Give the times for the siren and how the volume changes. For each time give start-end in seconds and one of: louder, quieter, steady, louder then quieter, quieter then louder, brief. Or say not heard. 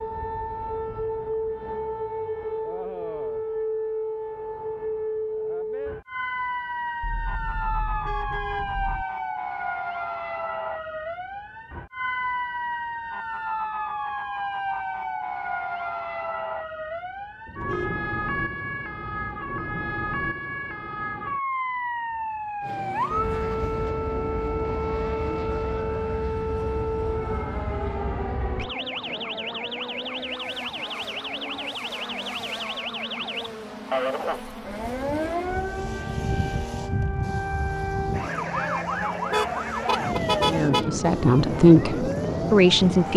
0.0-43.1 steady.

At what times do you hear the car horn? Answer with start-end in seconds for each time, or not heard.
7.0-9.1, 17.4-19.4, 39.3-40.9.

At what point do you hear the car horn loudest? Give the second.
40 s.